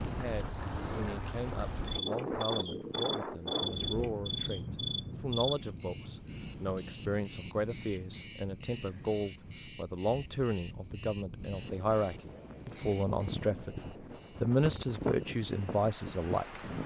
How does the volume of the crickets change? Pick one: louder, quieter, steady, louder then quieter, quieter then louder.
quieter.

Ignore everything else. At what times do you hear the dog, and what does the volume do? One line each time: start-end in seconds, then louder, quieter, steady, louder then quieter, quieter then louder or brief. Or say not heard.
not heard.